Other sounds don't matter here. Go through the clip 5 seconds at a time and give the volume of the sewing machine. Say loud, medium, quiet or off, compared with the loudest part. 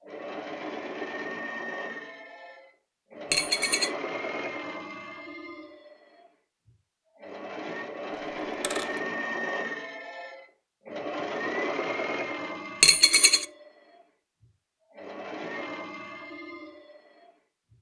loud, loud, loud, medium.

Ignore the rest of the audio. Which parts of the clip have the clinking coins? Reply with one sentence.
The clinking coins can be heard from 3.3 to 3.9 s, from 8.6 to 9.0 s and from 12.8 to 13.4 s.